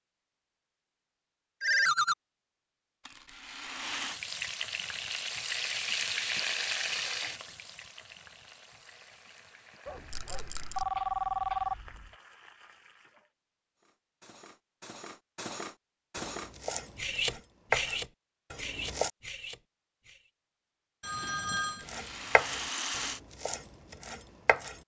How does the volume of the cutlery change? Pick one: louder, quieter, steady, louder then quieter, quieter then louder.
louder then quieter.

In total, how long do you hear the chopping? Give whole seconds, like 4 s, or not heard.
6 s.